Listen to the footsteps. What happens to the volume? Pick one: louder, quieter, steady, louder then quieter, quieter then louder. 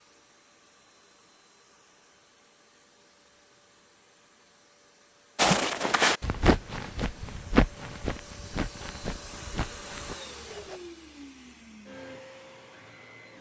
quieter.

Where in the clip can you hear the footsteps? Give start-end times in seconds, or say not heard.
5.3-10.8.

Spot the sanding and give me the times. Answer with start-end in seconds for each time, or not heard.
not heard.